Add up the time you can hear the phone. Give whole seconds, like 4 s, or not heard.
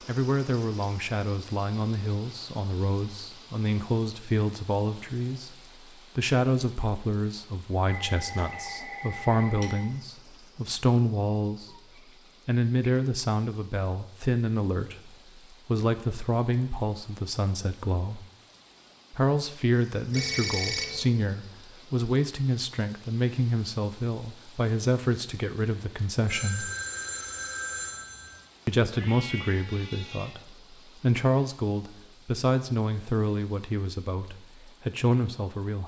5 s.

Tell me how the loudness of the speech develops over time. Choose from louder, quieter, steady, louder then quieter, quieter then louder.
steady.